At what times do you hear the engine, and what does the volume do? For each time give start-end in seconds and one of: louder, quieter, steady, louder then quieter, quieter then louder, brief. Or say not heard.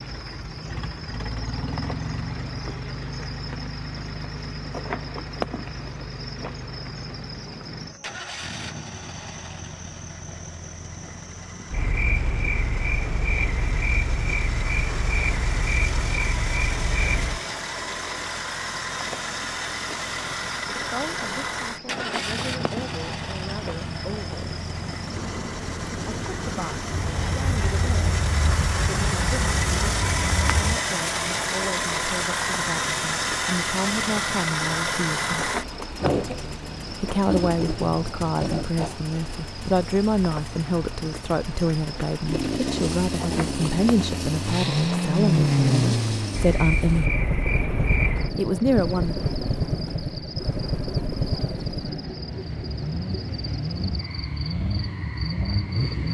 0.0-56.1 louder.